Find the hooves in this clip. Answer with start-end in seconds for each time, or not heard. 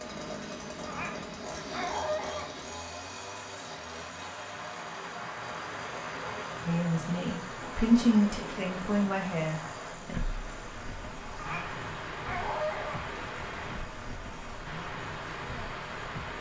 not heard.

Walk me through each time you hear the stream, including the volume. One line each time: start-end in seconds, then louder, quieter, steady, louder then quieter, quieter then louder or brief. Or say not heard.
0.0-16.3 louder.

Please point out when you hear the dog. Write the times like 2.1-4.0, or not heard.
0.8-2.5, 11.3-13.1.